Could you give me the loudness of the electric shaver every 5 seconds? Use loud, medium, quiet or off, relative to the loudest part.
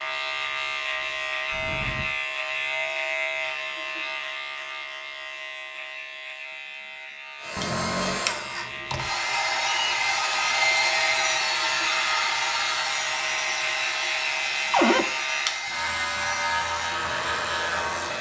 loud, medium, loud, loud.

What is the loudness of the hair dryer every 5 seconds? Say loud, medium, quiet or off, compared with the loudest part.
off, loud, loud, medium.